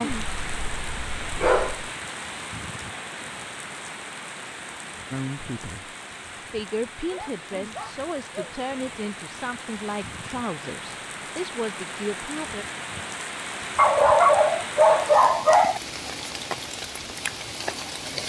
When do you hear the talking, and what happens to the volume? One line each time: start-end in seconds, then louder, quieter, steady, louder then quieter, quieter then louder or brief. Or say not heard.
5.1-12.7 steady.